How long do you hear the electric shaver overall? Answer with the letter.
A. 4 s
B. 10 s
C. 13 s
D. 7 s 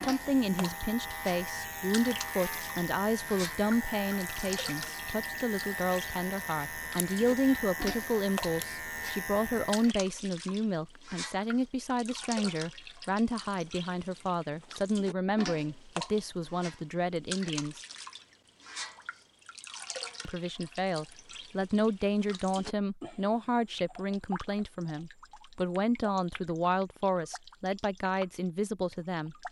B.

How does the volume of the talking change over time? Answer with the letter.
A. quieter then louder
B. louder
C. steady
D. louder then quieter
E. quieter
C.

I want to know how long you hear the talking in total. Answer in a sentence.
You can hear the talking for 27 seconds altogether.